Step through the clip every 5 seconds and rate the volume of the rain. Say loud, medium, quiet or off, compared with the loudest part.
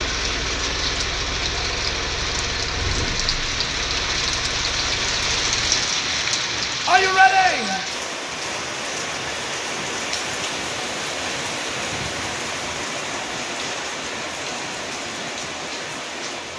loud, loud, loud, medium.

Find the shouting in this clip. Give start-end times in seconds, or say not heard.
6.8-7.8.